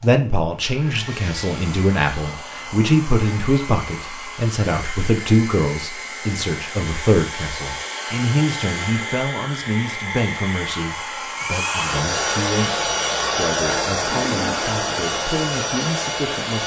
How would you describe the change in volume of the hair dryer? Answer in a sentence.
The volume of the hair dryer goes up.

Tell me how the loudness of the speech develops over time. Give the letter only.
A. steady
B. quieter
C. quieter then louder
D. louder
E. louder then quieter
B.